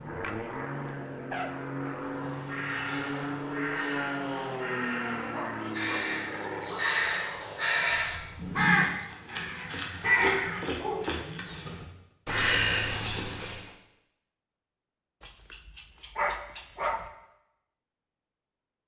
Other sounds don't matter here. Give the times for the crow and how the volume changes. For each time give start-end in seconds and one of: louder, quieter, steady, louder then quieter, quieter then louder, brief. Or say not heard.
2.0-13.7 louder.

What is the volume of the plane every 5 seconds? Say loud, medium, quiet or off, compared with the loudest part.
loud, loud, off, off.